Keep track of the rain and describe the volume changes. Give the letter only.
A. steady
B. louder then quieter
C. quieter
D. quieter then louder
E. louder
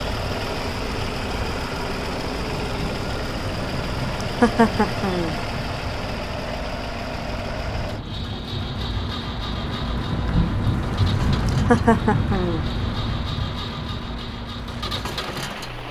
B.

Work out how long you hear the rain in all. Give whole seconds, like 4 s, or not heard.
16 s.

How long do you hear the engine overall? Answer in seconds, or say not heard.
16 s.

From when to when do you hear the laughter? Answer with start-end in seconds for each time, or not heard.
4.2-5.3, 11.4-12.7.